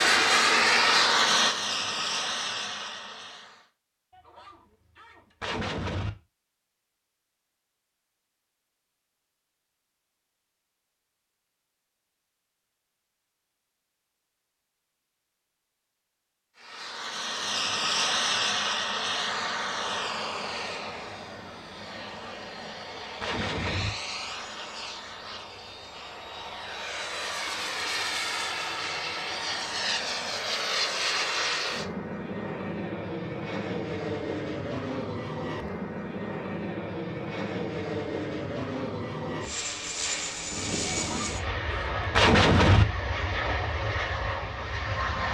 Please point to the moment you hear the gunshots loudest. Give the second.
42 s.